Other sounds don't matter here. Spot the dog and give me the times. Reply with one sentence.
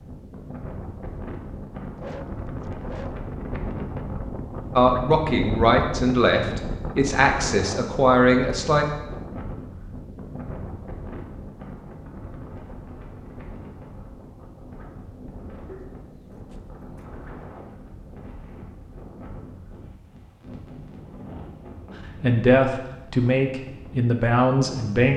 The dog can be heard from 1.9 to 3.3 s and from 15.7 to 16.6 s.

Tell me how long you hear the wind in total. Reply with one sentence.
You can hear the wind for 25 seconds altogether.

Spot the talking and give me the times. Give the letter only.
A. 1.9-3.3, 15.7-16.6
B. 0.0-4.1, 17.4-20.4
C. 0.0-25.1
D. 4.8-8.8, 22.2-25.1
D.